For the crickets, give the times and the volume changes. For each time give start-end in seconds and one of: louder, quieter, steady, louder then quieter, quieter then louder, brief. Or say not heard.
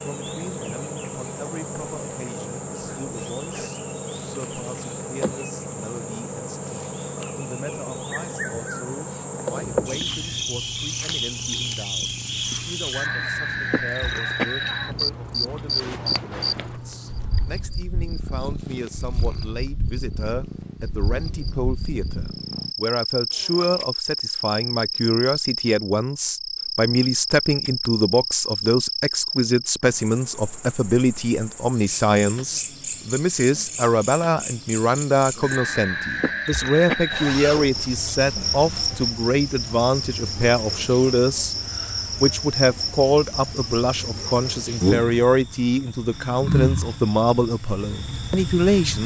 0.0-49.0 steady.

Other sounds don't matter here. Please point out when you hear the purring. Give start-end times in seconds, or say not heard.
9.8-22.8.